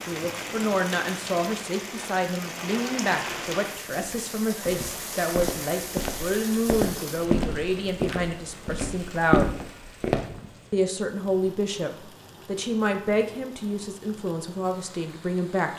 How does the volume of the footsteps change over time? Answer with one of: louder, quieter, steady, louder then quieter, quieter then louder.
louder.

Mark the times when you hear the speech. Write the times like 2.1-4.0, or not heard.
0.1-9.5, 10.7-15.7.